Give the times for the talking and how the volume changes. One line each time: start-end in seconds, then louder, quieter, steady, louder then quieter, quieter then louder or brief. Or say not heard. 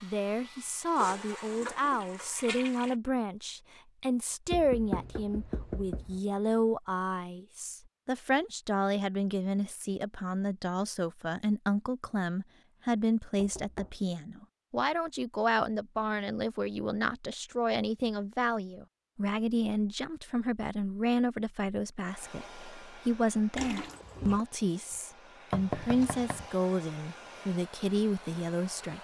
0.0-28.9 steady.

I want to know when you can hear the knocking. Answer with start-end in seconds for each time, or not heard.
4.5-6.2, 13.3-14.0, 25.5-26.4.